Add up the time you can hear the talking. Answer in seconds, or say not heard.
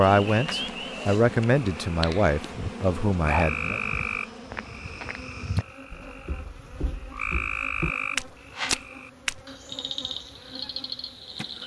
4 s.